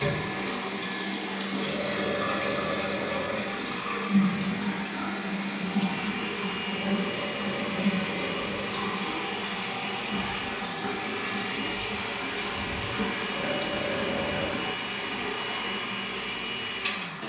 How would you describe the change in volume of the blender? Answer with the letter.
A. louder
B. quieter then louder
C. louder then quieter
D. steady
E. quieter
D.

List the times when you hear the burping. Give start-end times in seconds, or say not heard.
1.6-3.5, 6.7-8.7, 13.3-14.6.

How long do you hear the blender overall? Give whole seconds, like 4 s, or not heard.
17 s.